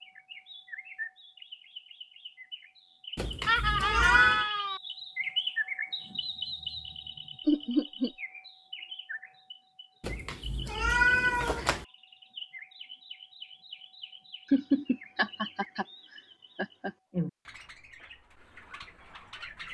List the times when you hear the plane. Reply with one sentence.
You can't hear the plane here.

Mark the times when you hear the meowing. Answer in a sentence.
The meowing can be heard from 3.1 to 4.5 s and from 10.0 to 11.8 s.